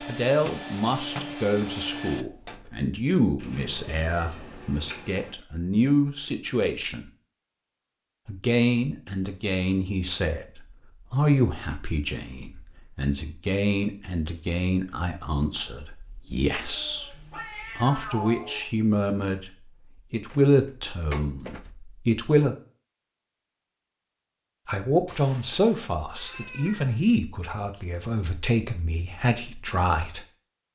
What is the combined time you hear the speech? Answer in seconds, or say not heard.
26 s.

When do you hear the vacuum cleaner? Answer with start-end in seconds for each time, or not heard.
0.0-2.2.